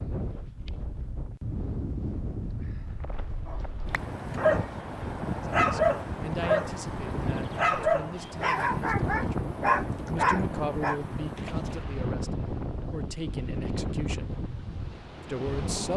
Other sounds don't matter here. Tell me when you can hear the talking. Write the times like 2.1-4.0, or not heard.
5.5-14.3, 15.2-15.9.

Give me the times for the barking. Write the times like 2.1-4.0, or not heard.
3.5-4.7, 5.5-6.8, 7.5-11.0.